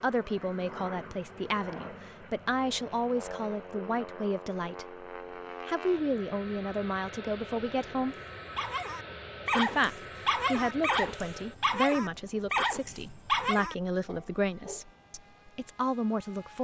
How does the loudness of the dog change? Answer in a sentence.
The loudness of the dog stays about the same.